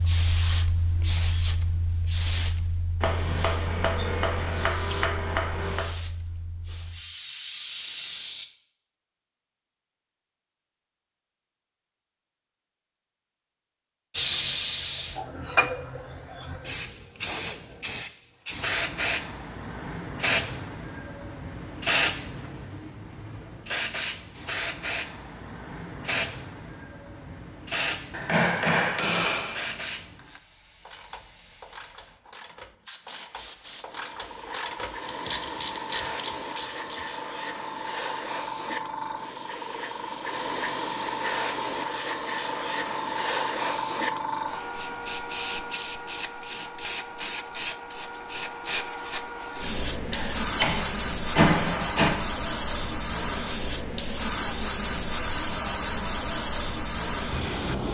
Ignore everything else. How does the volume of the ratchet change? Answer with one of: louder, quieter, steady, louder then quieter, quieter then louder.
louder.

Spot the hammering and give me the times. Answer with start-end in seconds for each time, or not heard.
3.0-5.9, 28.1-29.8, 50.1-52.1.